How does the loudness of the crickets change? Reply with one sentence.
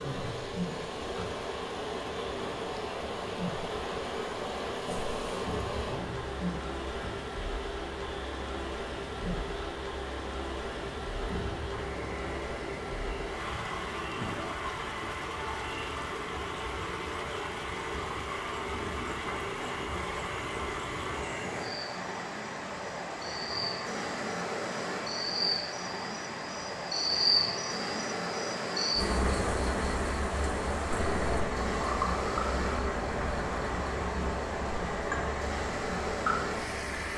The volume of the crickets goes up.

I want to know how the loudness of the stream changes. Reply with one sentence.
The volume of the stream stays about the same.